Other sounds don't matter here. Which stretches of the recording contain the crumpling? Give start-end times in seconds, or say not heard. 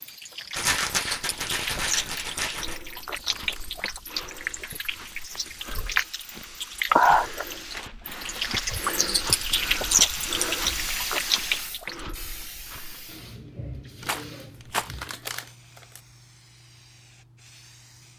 2.2-3.7, 14.0-16.0.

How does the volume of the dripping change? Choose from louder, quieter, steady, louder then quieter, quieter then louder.
louder.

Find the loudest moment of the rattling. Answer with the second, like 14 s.
1 s.